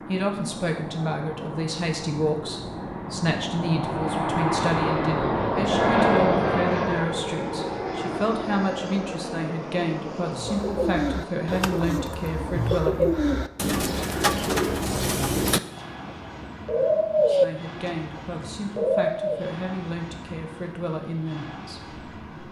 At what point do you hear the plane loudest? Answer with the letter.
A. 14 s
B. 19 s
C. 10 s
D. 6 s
D.